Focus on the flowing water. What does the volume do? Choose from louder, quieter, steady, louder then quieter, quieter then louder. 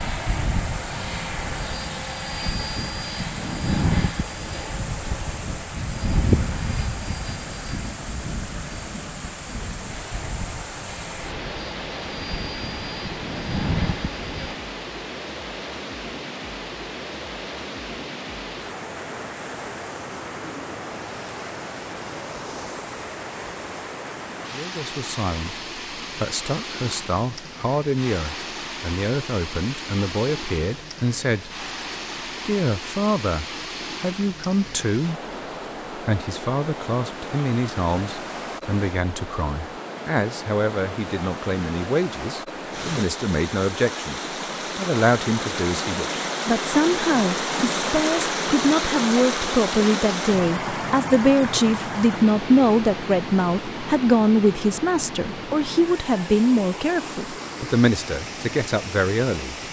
louder.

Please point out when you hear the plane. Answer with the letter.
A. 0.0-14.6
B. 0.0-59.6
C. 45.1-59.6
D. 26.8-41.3
A.